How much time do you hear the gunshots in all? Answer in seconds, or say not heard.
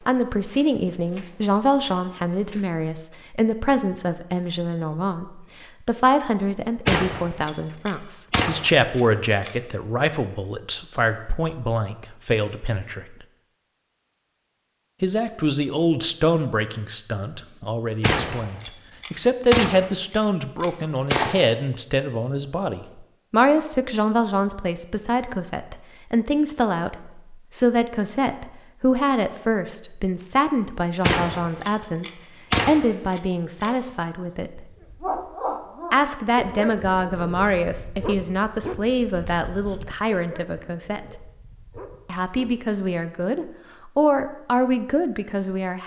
9 s.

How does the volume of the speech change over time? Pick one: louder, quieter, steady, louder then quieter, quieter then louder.
steady.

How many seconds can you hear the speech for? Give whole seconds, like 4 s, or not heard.
42 s.